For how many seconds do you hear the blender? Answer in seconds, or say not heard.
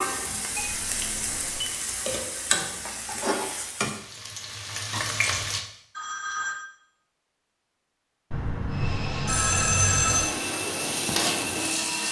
3 s.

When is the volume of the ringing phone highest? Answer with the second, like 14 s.
10 s.